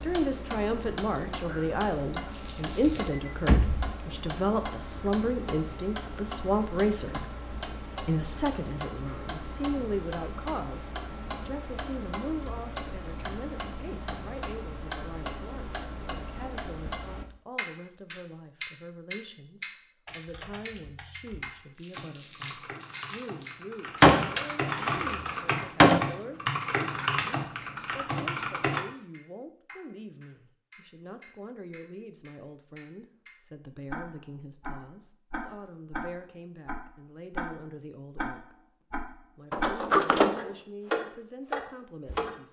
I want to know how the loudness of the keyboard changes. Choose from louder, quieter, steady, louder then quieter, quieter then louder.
louder.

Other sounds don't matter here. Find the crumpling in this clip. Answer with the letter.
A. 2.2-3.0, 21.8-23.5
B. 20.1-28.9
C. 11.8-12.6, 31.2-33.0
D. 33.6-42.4
A.